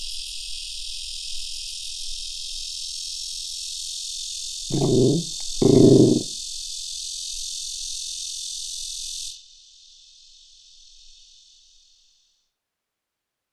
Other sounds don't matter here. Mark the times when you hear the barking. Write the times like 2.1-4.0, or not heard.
4.7-6.2.